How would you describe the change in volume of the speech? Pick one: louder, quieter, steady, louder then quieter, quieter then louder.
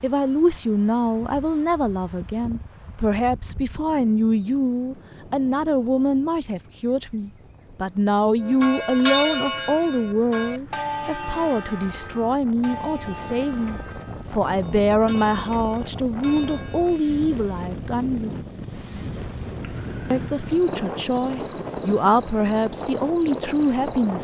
steady.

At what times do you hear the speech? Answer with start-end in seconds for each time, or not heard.
0.0-18.4, 20.1-24.2.